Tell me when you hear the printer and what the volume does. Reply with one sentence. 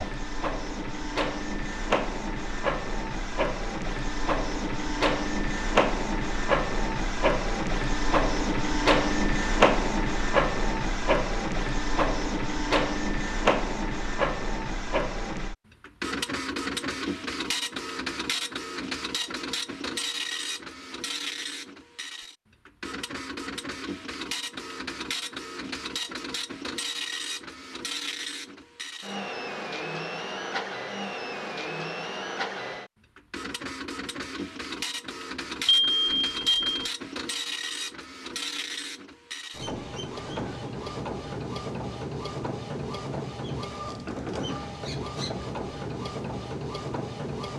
You can hear the printer from 0.0 to 47.5 s, getting quieter.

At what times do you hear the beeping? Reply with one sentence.
The beeping can be heard from 35.6 to 36.9 s.